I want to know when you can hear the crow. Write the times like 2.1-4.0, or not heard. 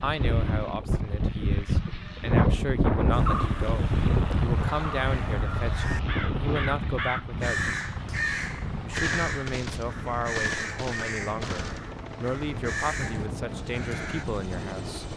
3.1-14.2.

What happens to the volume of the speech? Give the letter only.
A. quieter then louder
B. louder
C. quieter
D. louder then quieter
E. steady
E.